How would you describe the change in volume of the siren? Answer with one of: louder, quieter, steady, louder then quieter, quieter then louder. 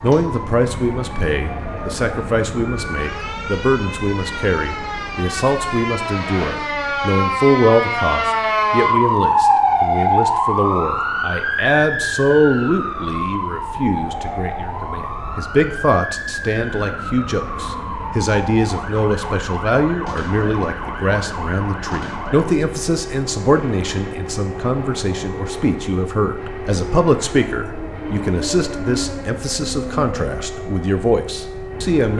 louder then quieter.